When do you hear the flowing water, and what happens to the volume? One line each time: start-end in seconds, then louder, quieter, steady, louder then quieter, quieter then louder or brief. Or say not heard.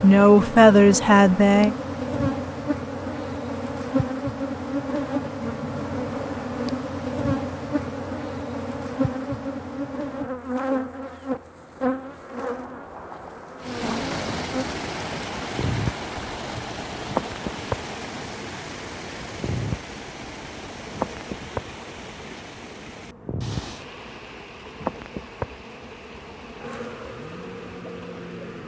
13.6-28.6 quieter.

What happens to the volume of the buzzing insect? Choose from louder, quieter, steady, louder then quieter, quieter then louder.
quieter.